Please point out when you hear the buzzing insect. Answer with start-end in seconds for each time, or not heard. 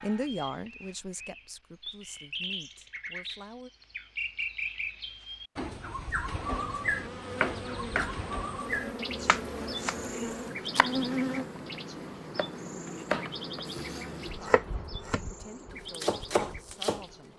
6.3-17.3.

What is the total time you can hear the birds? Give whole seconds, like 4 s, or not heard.
17 s.